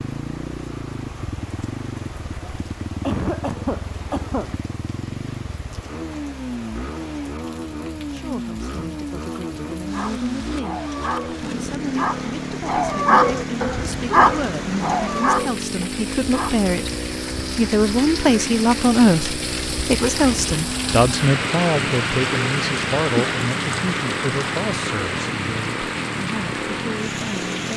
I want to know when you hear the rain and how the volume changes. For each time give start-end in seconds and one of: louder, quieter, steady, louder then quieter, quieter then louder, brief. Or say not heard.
0.0-27.7 louder.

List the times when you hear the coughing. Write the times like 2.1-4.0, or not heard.
3.0-4.5.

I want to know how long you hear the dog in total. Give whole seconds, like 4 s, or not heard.
7 s.